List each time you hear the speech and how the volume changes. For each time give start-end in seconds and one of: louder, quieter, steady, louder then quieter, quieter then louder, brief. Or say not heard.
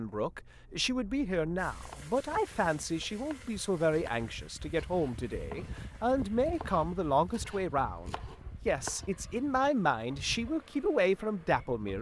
0.0-11.9 steady.